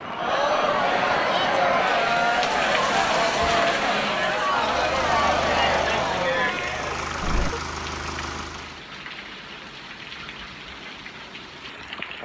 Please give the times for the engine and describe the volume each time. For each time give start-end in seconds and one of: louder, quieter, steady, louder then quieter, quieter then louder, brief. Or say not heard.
4.7-8.8 steady.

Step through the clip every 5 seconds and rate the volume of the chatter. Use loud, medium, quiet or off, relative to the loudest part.
loud, loud, off.